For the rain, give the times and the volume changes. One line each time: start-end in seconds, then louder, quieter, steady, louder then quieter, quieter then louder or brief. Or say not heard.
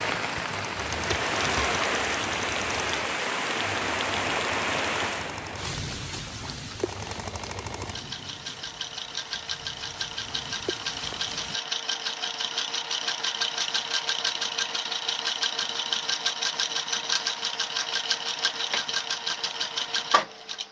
0.0-11.6 quieter.